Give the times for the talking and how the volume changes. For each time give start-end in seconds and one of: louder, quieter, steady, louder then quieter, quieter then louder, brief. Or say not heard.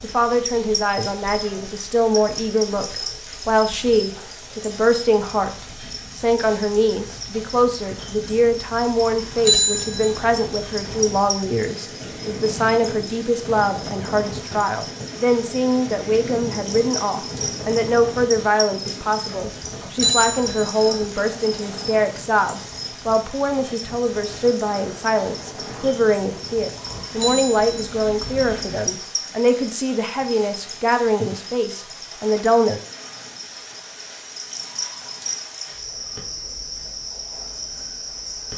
0.0-32.8 steady.